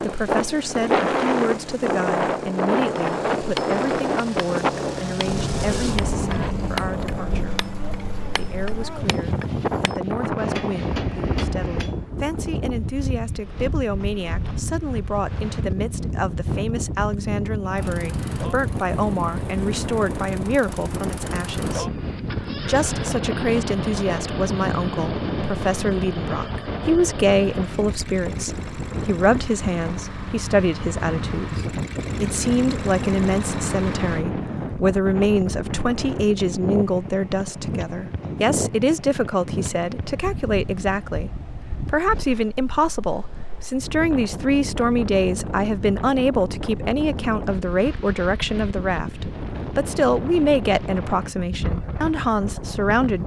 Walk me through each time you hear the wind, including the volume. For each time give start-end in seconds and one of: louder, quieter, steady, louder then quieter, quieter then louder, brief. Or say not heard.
0.0-53.2 quieter.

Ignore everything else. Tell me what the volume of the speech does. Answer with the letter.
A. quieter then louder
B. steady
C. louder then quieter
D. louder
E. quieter
D.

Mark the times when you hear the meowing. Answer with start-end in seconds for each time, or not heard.
not heard.